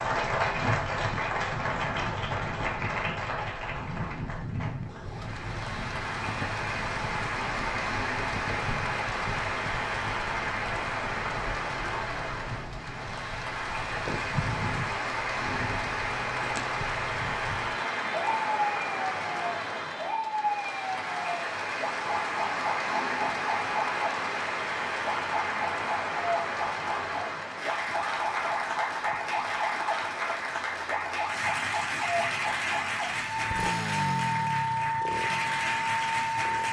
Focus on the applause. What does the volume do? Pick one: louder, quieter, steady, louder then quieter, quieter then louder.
steady.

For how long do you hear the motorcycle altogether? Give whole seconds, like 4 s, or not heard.
3 s.